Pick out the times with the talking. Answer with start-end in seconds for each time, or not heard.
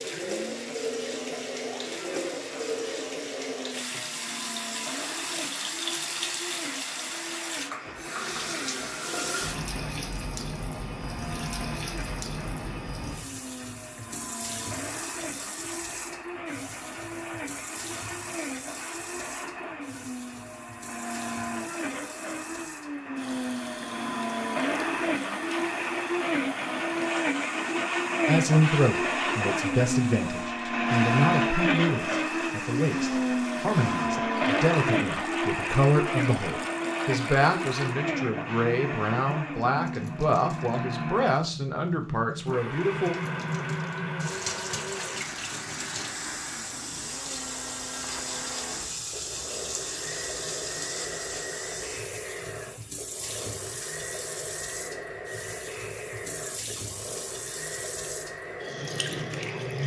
28.2-43.1.